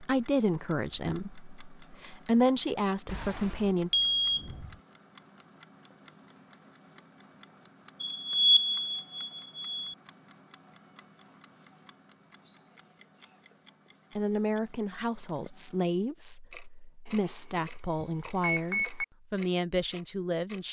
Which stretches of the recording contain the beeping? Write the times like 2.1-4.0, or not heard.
3.0-4.8, 8.0-9.9, 17.1-19.1.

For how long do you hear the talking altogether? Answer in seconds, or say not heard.
10 s.